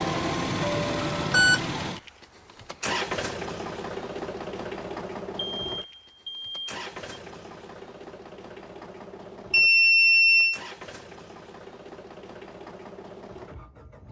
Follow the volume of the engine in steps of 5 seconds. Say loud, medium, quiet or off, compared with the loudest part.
loud, medium, quiet.